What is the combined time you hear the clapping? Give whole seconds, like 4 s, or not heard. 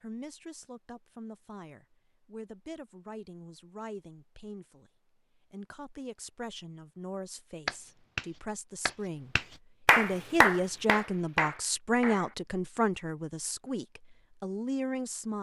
5 s.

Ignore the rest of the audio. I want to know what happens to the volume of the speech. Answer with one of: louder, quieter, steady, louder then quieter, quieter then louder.
louder.